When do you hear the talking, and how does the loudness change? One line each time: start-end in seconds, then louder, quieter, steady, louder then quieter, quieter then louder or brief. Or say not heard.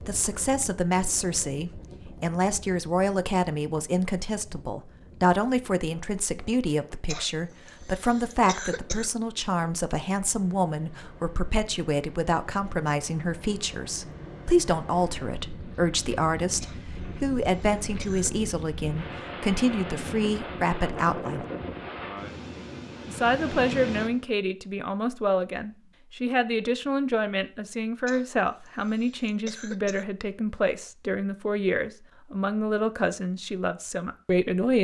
0.0-21.4 steady
23.1-34.8 steady.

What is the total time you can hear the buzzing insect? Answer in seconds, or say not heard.
not heard.